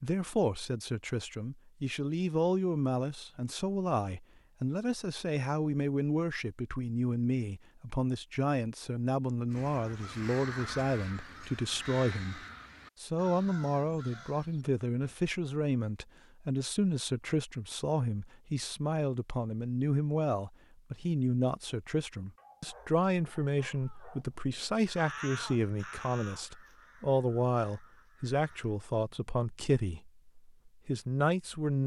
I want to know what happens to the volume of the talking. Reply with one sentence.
The volume of the talking stays about the same.